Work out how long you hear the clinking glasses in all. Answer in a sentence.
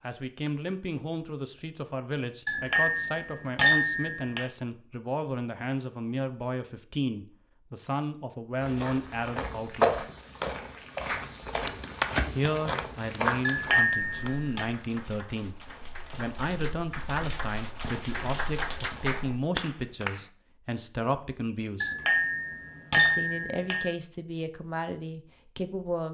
You can hear the clinking glasses for 5 seconds altogether.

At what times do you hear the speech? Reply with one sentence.
You can hear the speech from 0.0 to 10.0 s, from 12.3 to 21.9 s and from 22.9 to 26.0 s.